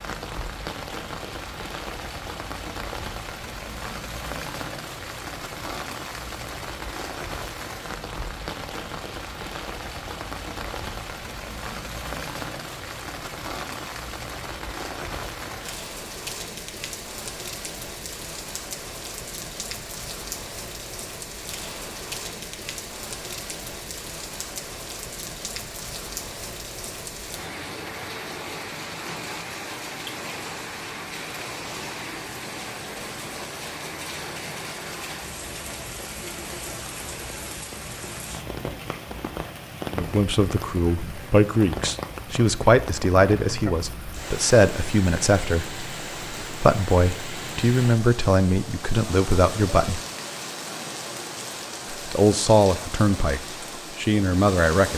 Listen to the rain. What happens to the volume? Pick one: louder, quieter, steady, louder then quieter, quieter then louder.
steady.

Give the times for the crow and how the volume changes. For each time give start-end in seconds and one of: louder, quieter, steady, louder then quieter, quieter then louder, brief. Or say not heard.
not heard.